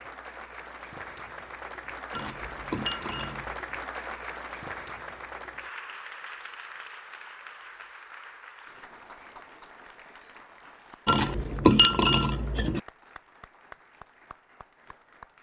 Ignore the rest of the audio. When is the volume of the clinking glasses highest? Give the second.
12 s.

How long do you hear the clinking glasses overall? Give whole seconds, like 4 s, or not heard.
3 s.